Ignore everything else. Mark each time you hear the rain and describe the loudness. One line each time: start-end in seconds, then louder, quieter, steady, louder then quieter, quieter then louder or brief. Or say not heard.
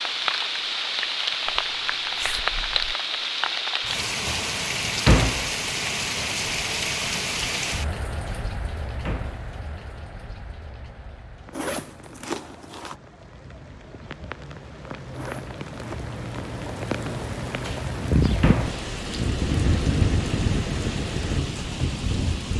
0.0-22.5 quieter then louder.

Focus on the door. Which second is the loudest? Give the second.
5 s.